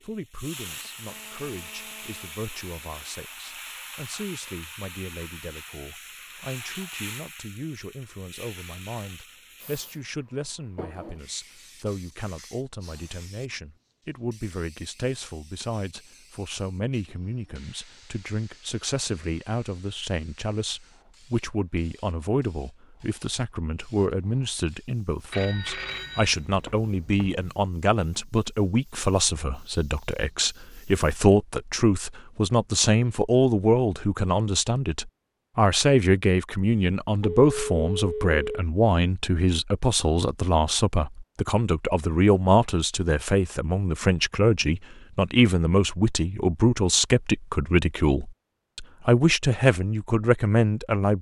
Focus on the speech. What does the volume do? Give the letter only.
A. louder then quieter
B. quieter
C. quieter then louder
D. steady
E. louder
E.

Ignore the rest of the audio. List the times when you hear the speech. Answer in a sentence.
You can hear the speech from 0.0 to 51.1 s.